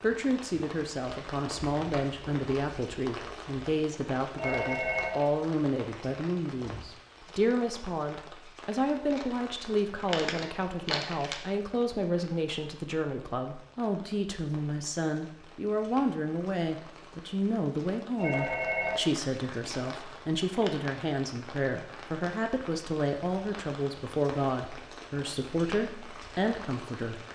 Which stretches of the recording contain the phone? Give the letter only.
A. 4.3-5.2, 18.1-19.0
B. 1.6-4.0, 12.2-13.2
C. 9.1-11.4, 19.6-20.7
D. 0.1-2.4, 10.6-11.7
A.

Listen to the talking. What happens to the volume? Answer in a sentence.
The loudness of the talking stays about the same.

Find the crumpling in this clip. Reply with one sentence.
You can hear the crumpling from 9.1 to 11.4 s and from 19.6 to 20.7 s.